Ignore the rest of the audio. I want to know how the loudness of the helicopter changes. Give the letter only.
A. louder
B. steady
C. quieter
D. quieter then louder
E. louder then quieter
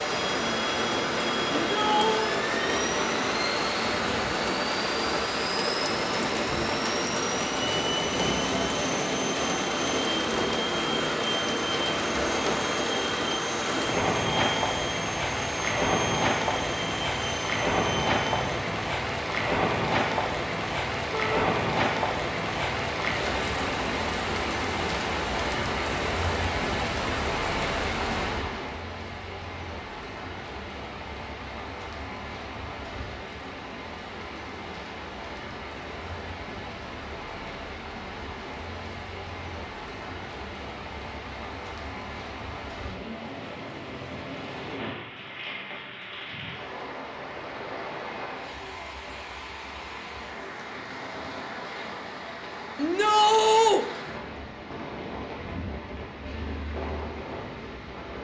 B.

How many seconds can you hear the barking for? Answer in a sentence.
The barking can't be heard in this clip.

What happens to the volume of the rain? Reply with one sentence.
The volume of the rain goes down.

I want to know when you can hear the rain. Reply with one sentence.
The rain can be heard from 0.0 to 58.1 s.